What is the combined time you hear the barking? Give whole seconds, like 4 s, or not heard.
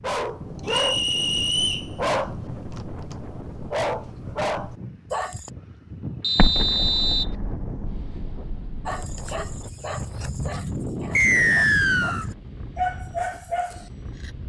11 s.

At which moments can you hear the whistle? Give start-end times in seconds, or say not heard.
0.7-1.9, 6.2-7.3, 11.2-12.2.